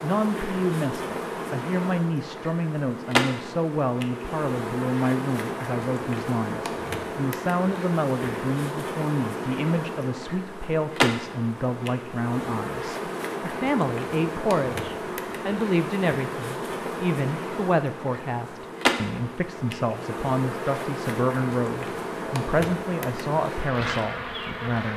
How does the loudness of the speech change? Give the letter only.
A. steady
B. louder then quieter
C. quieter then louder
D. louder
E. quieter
A.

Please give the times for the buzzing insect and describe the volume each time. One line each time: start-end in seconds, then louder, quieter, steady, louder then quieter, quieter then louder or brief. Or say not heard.
0.0-24.9 steady.